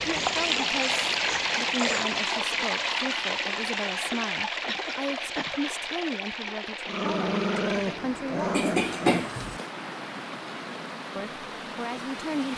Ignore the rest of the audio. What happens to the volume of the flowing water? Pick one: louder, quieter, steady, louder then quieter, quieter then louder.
quieter.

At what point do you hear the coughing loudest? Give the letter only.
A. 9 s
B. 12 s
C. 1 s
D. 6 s
A.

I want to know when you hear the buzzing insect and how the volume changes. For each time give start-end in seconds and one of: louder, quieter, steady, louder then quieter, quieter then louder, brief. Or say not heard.
not heard.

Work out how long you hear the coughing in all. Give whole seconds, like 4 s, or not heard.
4 s.